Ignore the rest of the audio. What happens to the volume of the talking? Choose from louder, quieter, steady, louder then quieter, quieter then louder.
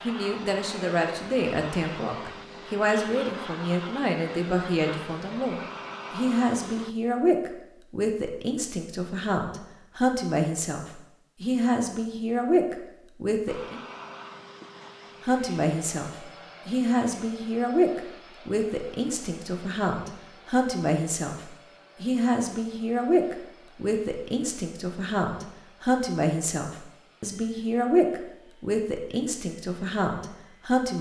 steady.